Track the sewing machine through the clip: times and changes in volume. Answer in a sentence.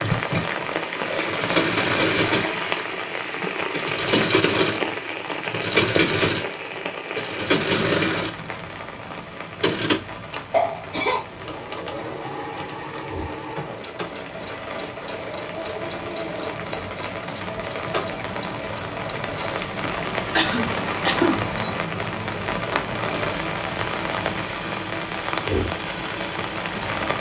The sewing machine can be heard from 0.0 to 27.1 s, getting quieter.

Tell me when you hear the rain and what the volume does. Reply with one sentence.
The rain can be heard from 0.0 to 27.1 s, getting quieter then louder.